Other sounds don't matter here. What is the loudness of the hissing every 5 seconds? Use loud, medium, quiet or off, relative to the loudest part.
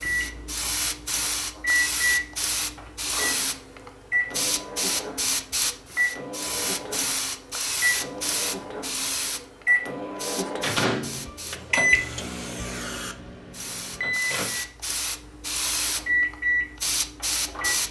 loud, loud, medium, loud.